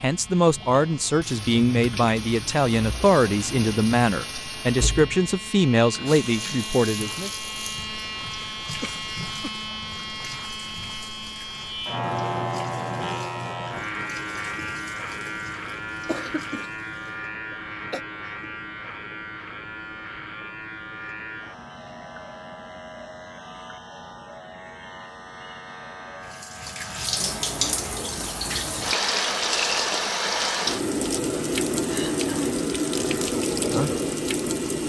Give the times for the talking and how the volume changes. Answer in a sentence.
The talking can be heard from 0.0 to 7.3 s, at a steady volume.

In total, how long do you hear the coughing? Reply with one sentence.
You can hear the coughing for 3 seconds altogether.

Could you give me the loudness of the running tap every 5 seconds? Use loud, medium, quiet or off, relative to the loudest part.
medium, quiet, quiet, quiet, off, loud, loud.